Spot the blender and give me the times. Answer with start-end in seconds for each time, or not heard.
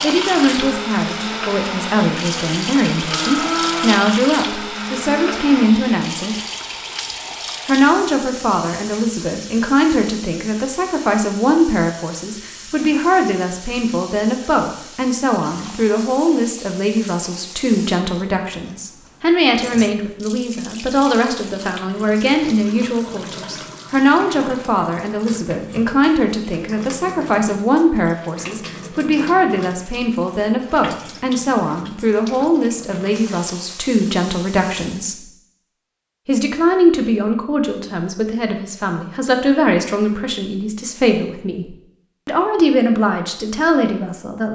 0.0-5.7.